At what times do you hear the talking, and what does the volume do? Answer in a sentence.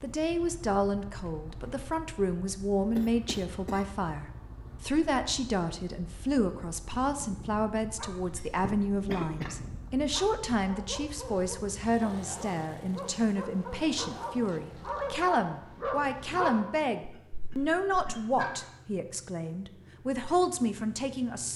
You can hear the talking from 0.0 to 21.5 s, at a steady volume.